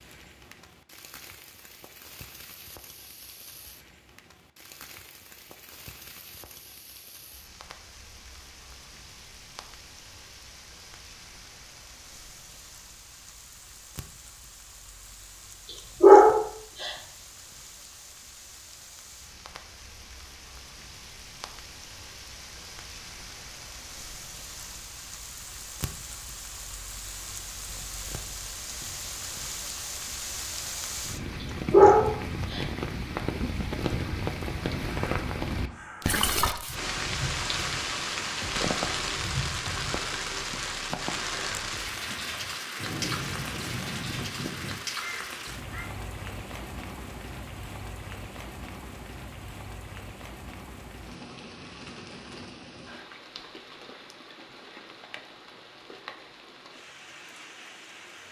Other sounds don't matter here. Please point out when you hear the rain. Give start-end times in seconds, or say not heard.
0.0-58.2.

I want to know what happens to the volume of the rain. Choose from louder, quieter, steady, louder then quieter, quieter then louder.
louder then quieter.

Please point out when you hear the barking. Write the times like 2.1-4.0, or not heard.
16.0-16.9, 31.7-32.6.